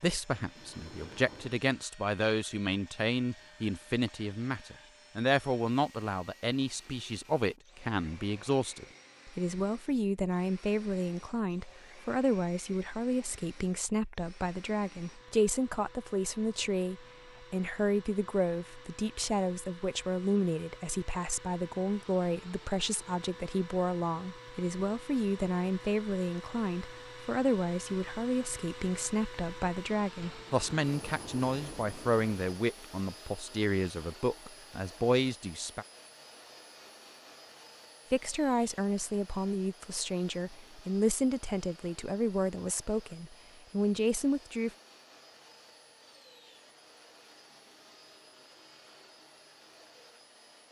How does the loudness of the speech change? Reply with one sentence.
The volume of the speech stays about the same.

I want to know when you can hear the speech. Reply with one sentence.
You can hear the speech from 0.0 to 35.9 s and from 38.1 to 44.7 s.